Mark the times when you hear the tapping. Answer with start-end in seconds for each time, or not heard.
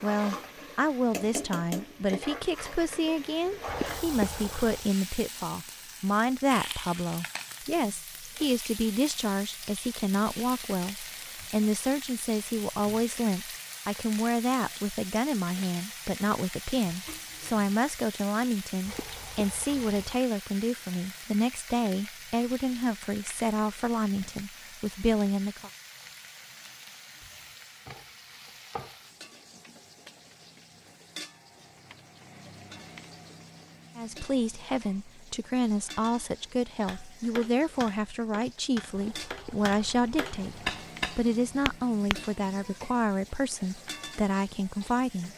36.9-42.2.